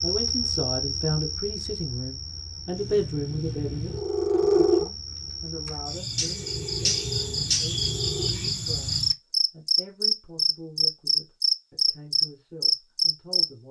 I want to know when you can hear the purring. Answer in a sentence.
The purring can be heard from 2.7 to 8.3 s.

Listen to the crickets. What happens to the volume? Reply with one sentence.
The loudness of the crickets goes down, then up.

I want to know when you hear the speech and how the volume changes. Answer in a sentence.
The speech can be heard from 0.0 to 13.6 s, getting quieter.